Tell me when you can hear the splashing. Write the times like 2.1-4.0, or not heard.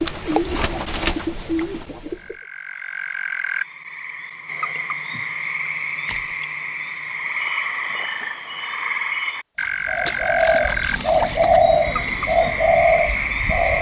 0.1-0.5, 6.0-6.5, 9.6-11.6.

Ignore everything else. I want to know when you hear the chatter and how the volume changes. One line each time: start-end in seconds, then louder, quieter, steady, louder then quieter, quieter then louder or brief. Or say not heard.
not heard.